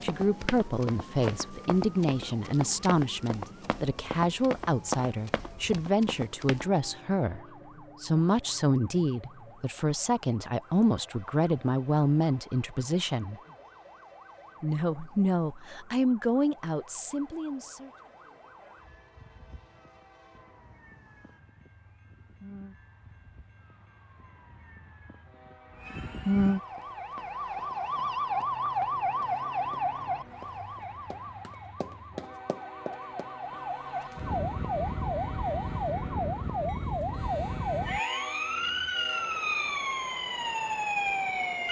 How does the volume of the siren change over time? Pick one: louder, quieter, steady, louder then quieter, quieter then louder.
louder.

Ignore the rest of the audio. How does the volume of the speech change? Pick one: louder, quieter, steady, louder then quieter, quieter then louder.
steady.